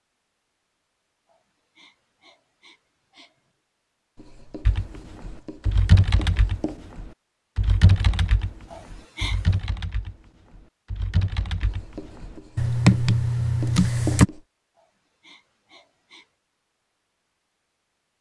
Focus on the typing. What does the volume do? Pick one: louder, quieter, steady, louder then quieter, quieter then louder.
quieter then louder.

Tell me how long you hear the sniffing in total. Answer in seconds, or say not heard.
5 s.